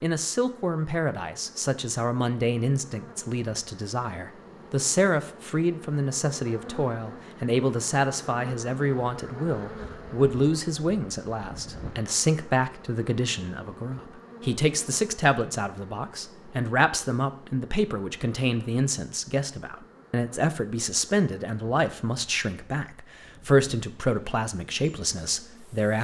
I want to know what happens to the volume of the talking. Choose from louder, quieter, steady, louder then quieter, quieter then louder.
steady.